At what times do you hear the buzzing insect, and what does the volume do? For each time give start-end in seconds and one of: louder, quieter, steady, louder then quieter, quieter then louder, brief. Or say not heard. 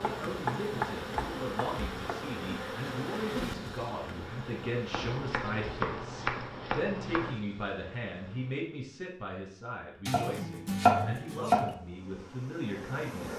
0.0-8.7 quieter
11.6-13.3 brief.